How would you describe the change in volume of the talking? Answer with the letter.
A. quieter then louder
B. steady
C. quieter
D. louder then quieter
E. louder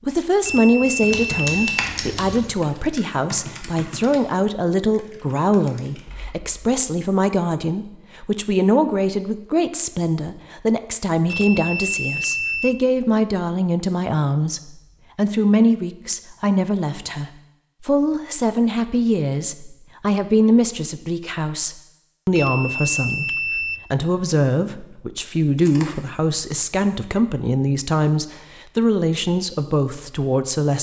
B.